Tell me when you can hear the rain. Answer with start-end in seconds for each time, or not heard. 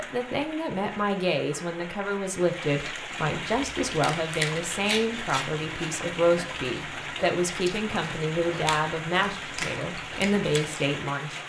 0.0-11.4.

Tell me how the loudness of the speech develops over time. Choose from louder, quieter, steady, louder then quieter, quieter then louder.
steady.